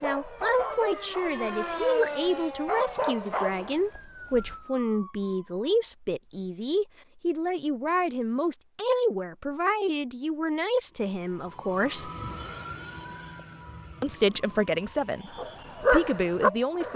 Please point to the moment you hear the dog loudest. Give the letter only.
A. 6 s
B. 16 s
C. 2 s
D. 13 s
B.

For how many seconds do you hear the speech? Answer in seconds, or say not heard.
15 s.